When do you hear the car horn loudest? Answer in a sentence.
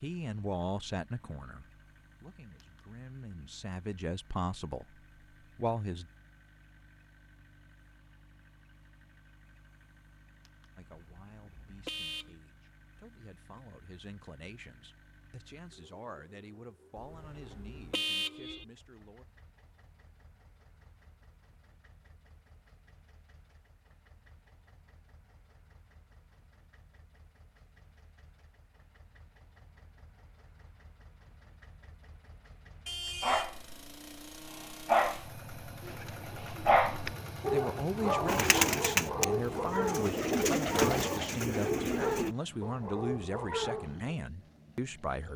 The volume of the car horn peaks at 18 seconds.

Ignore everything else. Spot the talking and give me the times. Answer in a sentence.
You can hear the talking from 0.0 to 4.8 s, from 5.5 to 6.1 s, from 10.8 to 19.2 s and from 37.4 to 45.3 s.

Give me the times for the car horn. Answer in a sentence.
The car horn can be heard from 10.9 to 12.3 s, from 16.9 to 18.6 s and from 32.9 to 33.6 s.